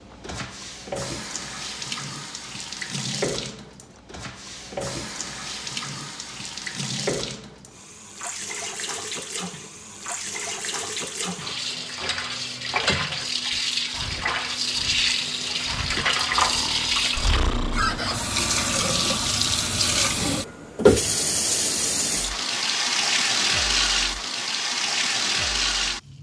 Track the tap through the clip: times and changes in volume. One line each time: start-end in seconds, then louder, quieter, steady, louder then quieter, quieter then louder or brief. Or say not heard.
0.0-26.1 louder.